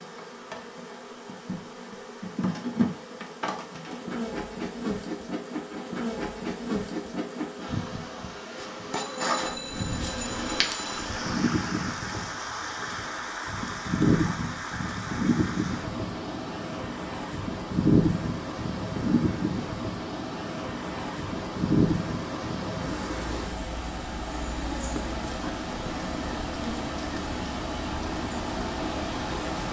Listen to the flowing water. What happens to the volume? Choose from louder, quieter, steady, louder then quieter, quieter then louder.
steady.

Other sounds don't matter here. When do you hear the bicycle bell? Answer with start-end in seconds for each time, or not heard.
8.9-11.1.